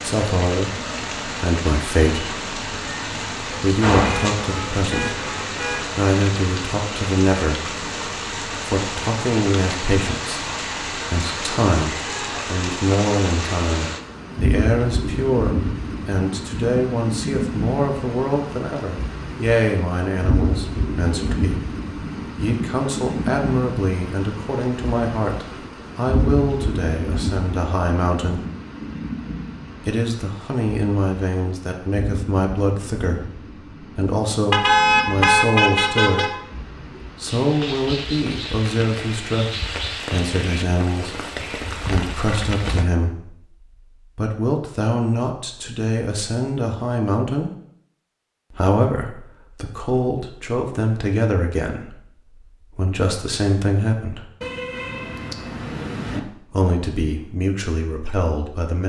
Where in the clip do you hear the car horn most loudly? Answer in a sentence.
The loudest moment of the car horn is at 35 seconds.